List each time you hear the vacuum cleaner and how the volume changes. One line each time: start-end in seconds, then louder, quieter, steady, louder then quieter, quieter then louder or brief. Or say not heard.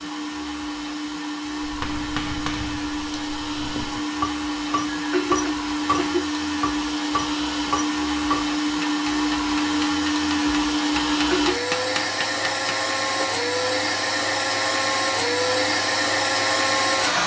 0.0-17.2 louder.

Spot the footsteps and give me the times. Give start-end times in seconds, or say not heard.
not heard.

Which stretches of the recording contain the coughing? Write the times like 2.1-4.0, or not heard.
4.8-6.2, 11.1-11.6.